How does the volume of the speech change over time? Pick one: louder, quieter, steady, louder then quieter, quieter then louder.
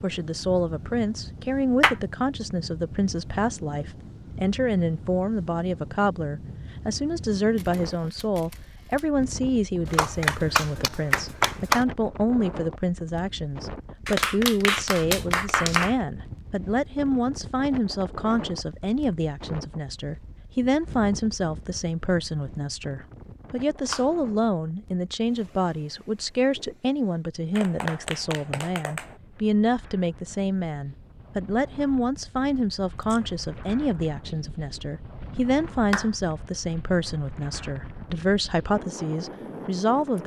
steady.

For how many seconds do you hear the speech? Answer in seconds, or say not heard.
40 s.